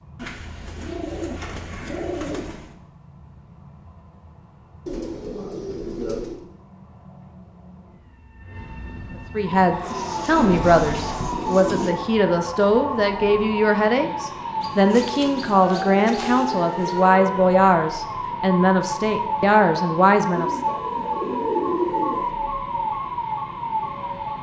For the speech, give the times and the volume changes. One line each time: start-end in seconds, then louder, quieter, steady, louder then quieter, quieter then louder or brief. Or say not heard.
9.3-20.8 steady.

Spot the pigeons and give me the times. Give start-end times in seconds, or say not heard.
0.1-2.7, 4.8-6.4, 9.9-11.9, 14.6-17.1, 20.3-22.3.